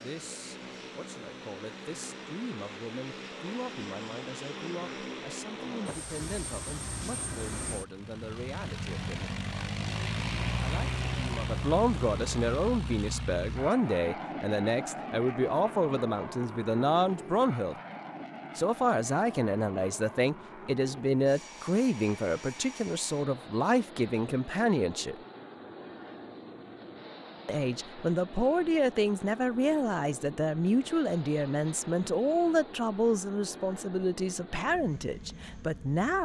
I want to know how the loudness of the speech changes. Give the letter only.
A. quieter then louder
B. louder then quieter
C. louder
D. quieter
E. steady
C.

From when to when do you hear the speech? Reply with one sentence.
You can hear the speech from 0.0 to 9.3 s, from 10.6 to 17.8 s, from 18.6 to 25.1 s and from 27.4 to 36.2 s.